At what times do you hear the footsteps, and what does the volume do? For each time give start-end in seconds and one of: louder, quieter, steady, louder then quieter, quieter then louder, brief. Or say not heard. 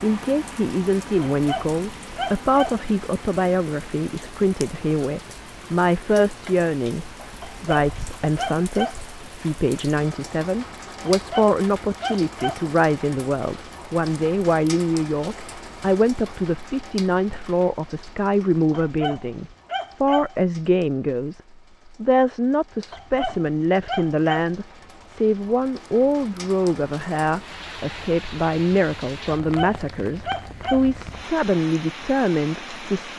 not heard.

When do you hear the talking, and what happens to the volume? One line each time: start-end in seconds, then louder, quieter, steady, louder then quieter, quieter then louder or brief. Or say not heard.
0.0-21.4 steady
22.0-33.1 steady.